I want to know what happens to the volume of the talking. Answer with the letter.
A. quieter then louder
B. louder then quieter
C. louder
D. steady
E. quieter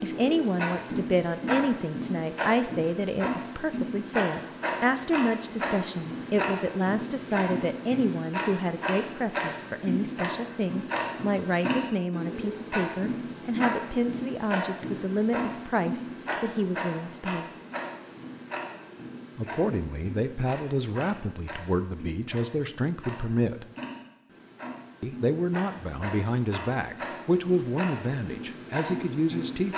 D.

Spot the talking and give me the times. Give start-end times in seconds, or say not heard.
0.0-17.5, 19.4-23.6, 25.0-29.7.